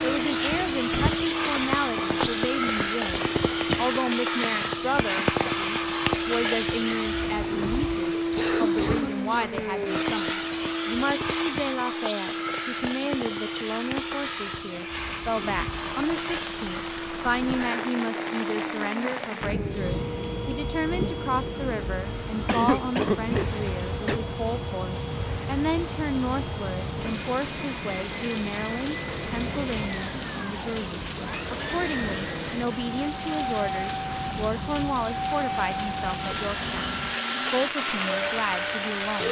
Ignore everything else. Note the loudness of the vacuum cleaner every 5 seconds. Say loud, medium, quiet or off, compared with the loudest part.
loud, loud, loud, medium, medium, medium, medium, loud.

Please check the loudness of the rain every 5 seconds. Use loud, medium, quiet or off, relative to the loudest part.
loud, loud, medium, loud, loud, loud, loud, loud.